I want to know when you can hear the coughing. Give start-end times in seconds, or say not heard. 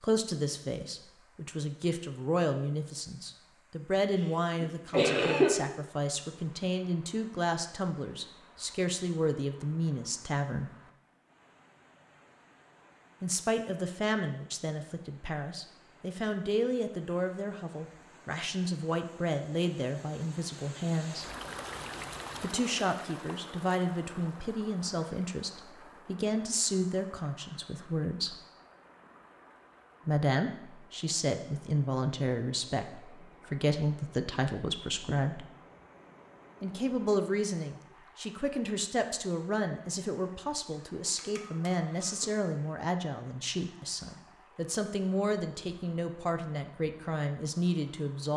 4.6-5.6, 41.1-42.3.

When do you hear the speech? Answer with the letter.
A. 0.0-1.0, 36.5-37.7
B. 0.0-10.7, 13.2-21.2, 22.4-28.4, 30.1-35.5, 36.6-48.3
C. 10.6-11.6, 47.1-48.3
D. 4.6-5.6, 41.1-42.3
B.